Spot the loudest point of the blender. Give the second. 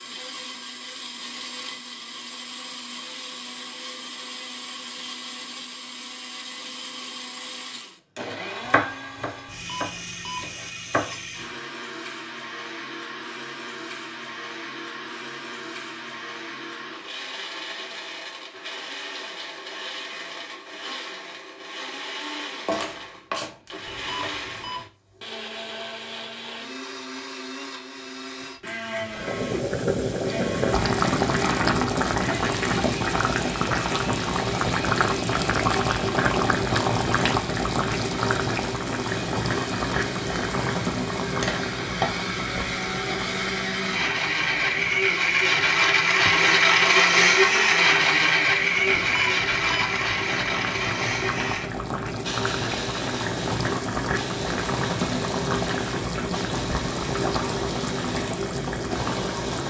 47 s.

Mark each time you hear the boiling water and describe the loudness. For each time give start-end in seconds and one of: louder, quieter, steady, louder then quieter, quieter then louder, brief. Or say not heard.
29.1-59.6 quieter then louder.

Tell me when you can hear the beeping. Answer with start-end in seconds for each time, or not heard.
9.4-10.5, 23.9-24.9, 49.0-50.0.